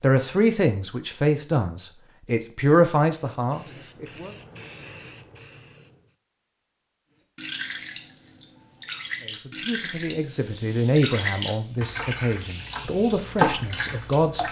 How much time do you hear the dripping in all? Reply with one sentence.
You can hear the dripping for 7 seconds altogether.